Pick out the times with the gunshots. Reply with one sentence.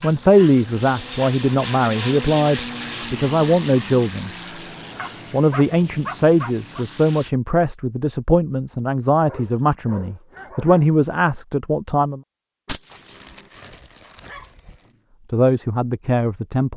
The gunshots can be heard from 12.7 to 13.4 s.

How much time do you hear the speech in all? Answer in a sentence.
You can hear the speech for 13 seconds altogether.